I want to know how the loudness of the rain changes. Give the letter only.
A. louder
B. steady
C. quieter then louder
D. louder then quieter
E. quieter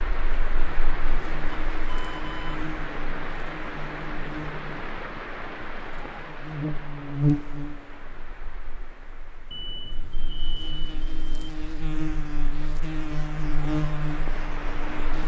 C.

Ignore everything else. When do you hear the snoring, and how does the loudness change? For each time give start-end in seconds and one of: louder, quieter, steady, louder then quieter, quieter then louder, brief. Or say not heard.
not heard.